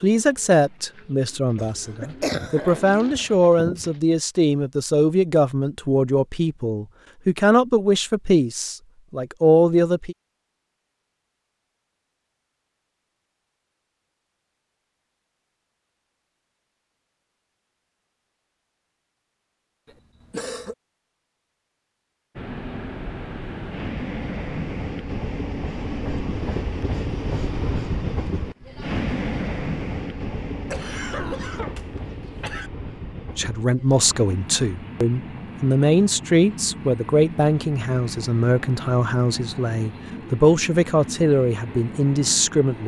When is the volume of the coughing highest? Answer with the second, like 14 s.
2 s.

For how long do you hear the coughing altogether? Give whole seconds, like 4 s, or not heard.
4 s.